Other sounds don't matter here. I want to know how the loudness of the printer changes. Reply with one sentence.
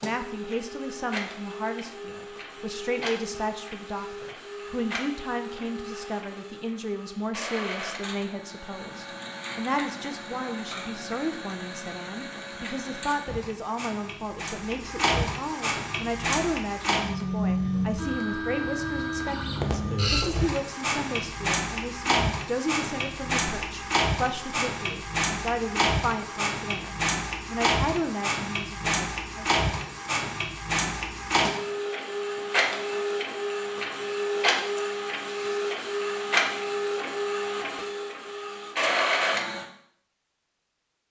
The volume of the printer goes up.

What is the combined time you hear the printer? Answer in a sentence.
You can hear the printer for 40 seconds altogether.